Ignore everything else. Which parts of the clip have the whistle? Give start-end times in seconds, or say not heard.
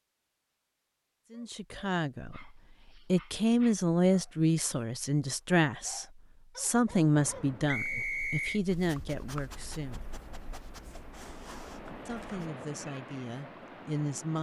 7.7-8.6.